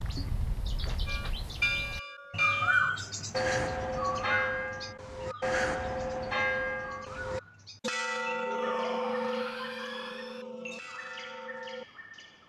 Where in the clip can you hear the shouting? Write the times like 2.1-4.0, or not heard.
8.4-10.4.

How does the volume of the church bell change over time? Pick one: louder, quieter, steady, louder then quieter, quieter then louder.
quieter.